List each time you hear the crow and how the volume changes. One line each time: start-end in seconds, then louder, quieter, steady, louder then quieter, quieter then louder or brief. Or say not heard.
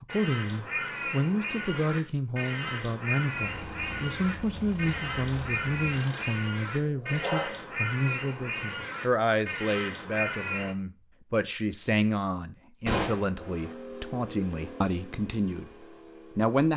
0.1-10.8 steady.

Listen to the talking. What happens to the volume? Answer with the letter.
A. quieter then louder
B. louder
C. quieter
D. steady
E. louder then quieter
D.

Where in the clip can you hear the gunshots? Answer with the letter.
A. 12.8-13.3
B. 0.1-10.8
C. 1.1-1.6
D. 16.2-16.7
A.